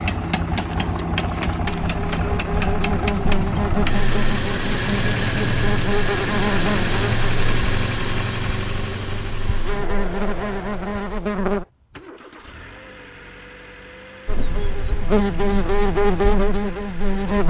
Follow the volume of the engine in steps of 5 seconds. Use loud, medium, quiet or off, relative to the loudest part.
loud, loud, quiet, quiet.